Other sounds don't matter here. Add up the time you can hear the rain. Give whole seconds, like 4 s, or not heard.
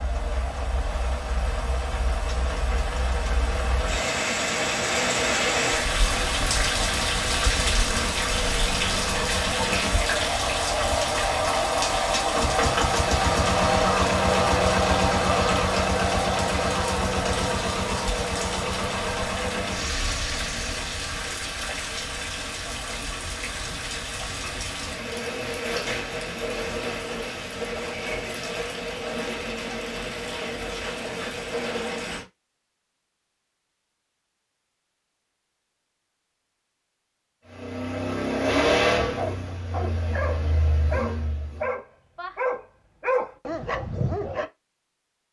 32 s.